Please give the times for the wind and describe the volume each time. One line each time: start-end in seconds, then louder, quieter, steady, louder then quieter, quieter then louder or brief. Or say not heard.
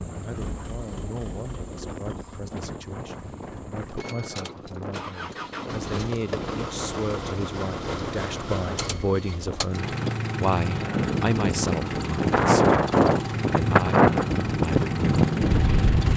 0.0-16.1 louder.